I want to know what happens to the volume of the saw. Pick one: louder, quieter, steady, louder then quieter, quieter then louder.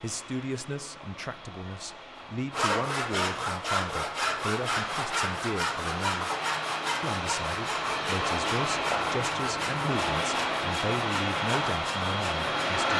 quieter.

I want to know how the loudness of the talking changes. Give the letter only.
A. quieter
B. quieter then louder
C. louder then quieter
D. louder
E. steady
E.